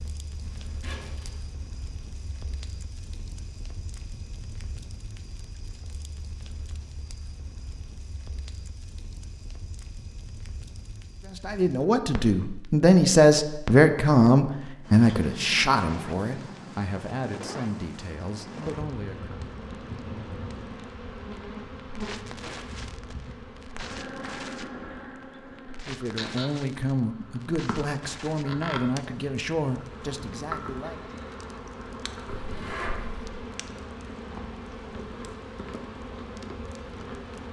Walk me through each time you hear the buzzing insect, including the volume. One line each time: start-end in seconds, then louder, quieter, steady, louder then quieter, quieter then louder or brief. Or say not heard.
18.6-37.4 steady.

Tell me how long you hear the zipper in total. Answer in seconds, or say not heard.
2 s.